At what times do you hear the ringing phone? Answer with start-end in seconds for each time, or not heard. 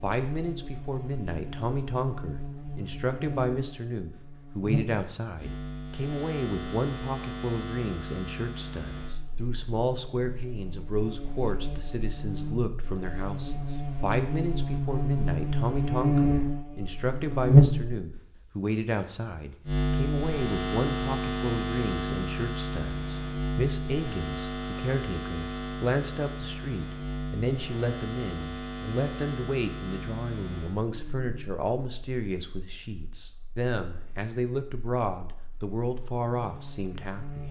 not heard.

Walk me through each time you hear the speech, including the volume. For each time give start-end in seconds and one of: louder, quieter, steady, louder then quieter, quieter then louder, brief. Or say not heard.
0.0-37.4 steady.